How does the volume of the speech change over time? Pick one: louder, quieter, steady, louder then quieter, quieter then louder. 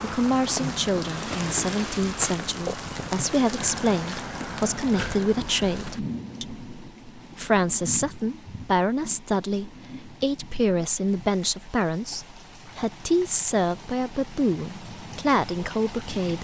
steady.